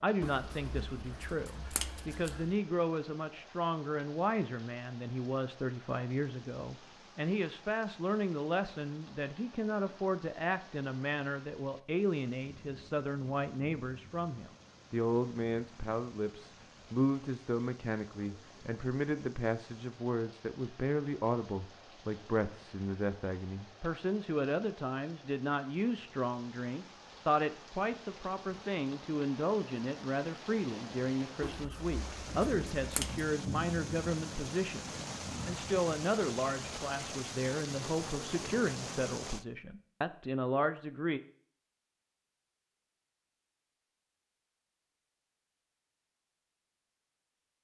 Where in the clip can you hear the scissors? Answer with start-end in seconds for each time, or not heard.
0.2-2.5, 31.4-33.2.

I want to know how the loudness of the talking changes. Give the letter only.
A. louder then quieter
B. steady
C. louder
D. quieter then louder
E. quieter
B.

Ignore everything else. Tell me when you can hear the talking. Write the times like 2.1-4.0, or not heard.
0.0-41.2.